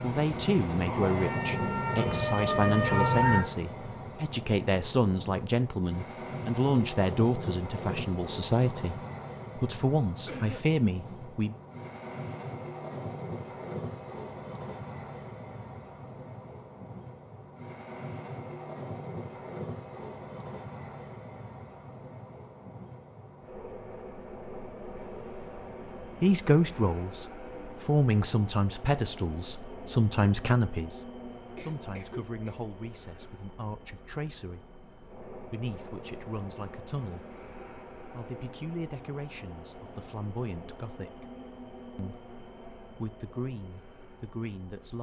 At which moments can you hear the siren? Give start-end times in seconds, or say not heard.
0.0-3.4.